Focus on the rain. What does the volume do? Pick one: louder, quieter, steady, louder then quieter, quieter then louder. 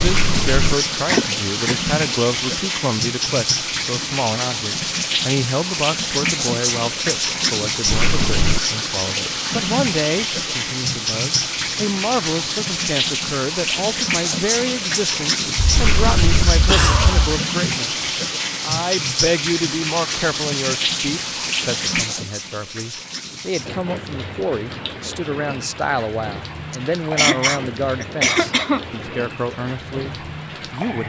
quieter.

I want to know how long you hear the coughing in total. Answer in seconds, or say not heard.
5 s.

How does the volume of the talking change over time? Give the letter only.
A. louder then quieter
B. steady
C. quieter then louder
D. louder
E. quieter
B.